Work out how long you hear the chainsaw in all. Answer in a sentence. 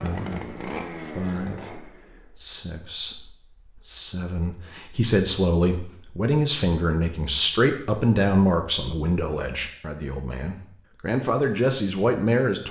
You can hear the chainsaw for 2 seconds altogether.